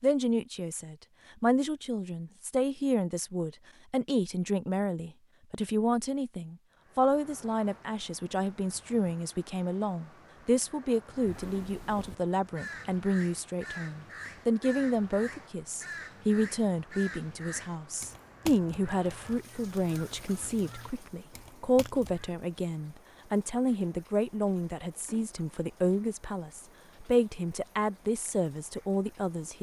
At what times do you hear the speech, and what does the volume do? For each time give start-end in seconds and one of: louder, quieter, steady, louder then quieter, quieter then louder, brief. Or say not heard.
0.0-29.5 steady.